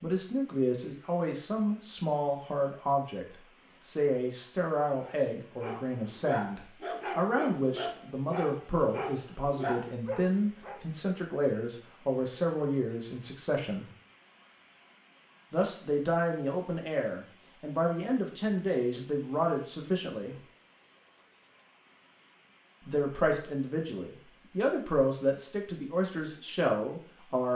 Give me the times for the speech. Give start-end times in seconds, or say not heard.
0.0-13.8, 15.5-20.4, 22.9-27.5.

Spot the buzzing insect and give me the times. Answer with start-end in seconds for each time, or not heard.
not heard.